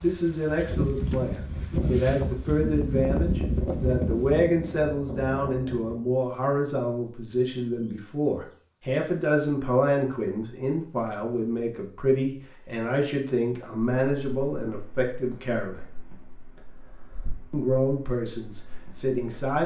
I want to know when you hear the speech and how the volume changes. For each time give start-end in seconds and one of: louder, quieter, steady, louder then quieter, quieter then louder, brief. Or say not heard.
0.0-15.8 steady
17.5-19.6 brief.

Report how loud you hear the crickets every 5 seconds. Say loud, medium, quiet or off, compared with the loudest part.
loud, quiet, quiet, quiet.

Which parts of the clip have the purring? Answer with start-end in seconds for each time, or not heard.
not heard.